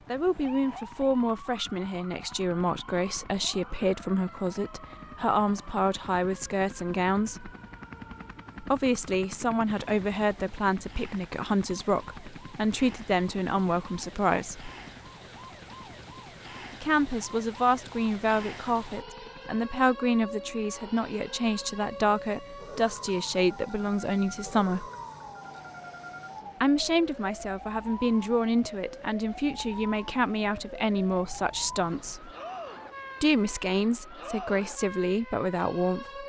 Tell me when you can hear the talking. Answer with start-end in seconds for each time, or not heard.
0.1-7.5, 8.6-14.7, 16.7-24.9, 26.6-32.3, 33.2-36.2.